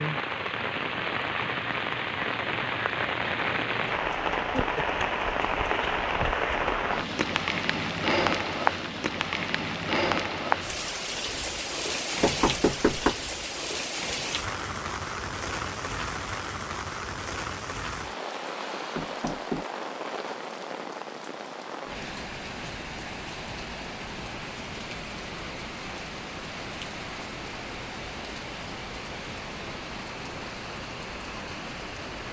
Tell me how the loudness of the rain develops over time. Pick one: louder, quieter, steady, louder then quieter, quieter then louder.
quieter.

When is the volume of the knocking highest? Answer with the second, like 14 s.
13 s.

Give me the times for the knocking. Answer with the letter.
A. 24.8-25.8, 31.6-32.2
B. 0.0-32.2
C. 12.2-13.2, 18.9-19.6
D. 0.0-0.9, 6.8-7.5
C.